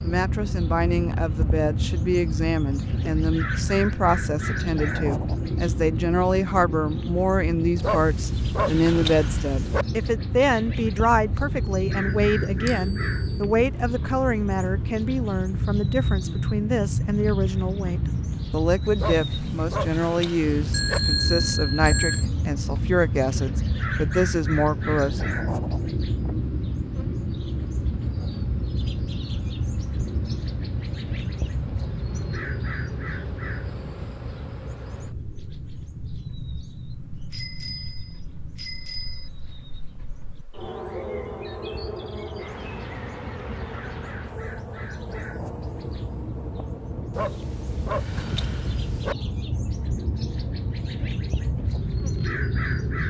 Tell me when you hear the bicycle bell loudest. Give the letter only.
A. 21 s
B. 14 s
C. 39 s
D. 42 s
A.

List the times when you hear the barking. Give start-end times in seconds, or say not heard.
7.8-9.8, 18.9-21.0, 47.1-49.1.